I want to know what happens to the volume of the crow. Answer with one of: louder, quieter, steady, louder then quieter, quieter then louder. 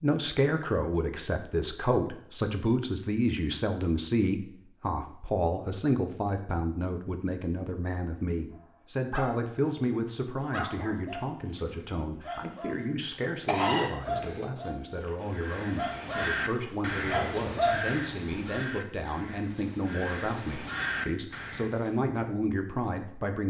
quieter then louder.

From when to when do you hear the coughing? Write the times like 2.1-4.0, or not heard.
13.4-14.4.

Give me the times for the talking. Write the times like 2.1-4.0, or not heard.
0.0-23.4.